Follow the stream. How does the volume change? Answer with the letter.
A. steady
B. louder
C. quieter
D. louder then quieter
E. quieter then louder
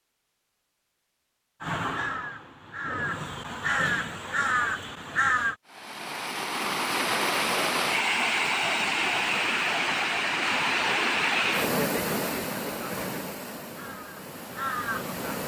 C.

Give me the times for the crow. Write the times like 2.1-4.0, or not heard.
1.6-5.5, 13.7-15.2.